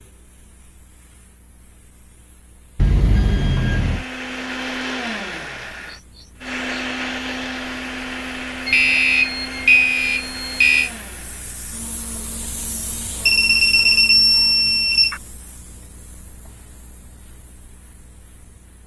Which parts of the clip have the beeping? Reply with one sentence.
You can hear the beeping from 2.8 to 4.0 s, from 8.7 to 10.9 s and from 13.2 to 15.2 s.